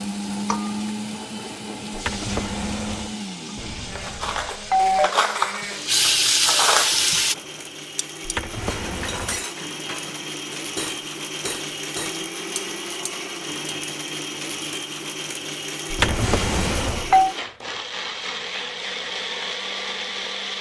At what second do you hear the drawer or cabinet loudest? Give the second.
16 s.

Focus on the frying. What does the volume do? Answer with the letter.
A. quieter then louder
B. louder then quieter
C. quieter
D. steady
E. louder
E.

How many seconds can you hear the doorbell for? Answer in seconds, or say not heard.
3 s.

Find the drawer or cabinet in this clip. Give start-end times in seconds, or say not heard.
1.9-3.1, 8.2-9.4, 15.9-17.1.